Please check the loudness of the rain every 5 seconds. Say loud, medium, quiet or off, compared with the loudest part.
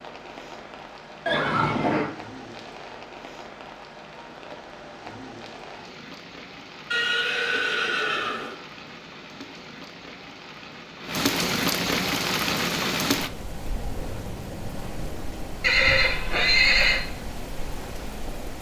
quiet, quiet, loud, medium.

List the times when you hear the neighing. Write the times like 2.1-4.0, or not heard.
1.2-2.1, 6.9-8.6, 15.6-17.0.